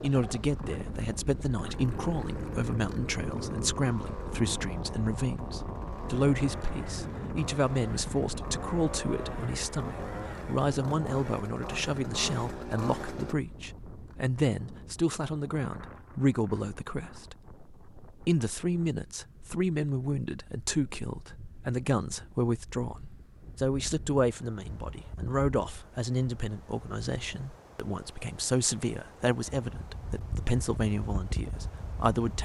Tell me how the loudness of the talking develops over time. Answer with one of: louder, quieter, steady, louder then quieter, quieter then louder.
steady.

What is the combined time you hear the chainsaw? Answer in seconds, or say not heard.
13 s.